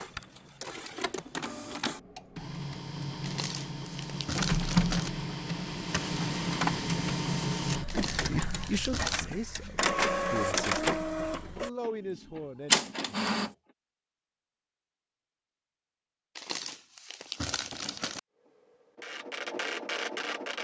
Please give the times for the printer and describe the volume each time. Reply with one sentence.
The printer can be heard from 0.0 to 13.6 s, getting louder; and briefly from 18.4 to 20.5 s.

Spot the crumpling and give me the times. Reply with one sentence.
You can hear the crumpling from 3.2 to 5.1 s, from 7.8 to 9.2 s and from 16.4 to 18.2 s.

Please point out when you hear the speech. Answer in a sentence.
The speech can be heard from 8.2 to 12.8 s.